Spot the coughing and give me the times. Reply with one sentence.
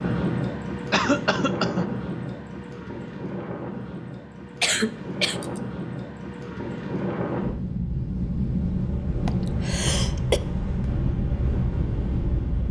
You can hear the coughing from 0.9 to 1.9 s, from 4.6 to 5.6 s and from 9.2 to 10.4 s.